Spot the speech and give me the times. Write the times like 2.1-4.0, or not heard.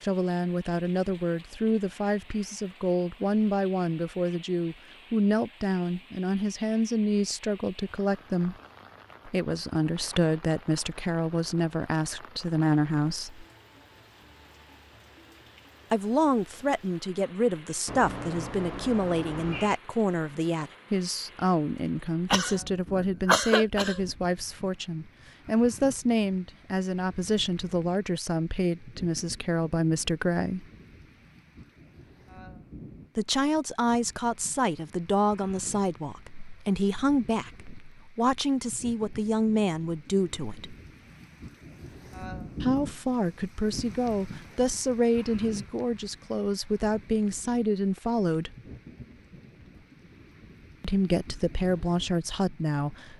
0.0-8.6, 9.2-13.4, 15.9-30.6, 33.1-40.8, 42.6-48.5, 50.8-53.1.